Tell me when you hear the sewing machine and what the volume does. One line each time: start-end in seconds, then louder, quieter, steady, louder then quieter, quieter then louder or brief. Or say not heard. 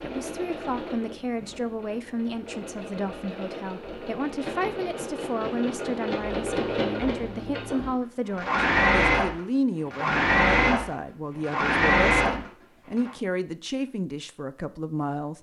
0.0-13.2 louder.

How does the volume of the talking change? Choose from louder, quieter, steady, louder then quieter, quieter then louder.
steady.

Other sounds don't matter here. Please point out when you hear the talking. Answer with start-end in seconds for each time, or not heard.
0.0-15.3.